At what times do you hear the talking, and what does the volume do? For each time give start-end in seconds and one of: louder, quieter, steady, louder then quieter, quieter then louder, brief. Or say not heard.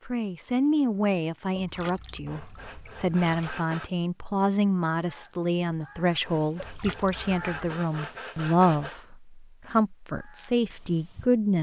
0.1-11.5 steady.